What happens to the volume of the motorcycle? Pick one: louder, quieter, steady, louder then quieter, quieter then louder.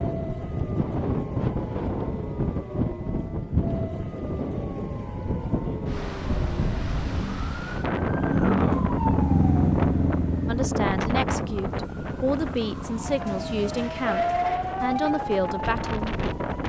louder then quieter.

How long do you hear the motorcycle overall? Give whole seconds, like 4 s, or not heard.
9 s.